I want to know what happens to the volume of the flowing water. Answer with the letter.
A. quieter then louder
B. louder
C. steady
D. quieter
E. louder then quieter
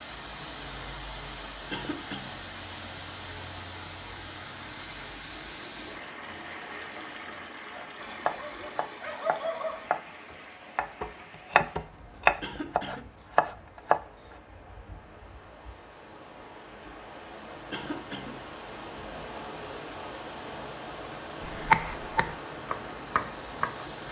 A.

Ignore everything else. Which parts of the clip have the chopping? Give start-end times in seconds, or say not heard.
7.8-13.9, 21.4-24.0.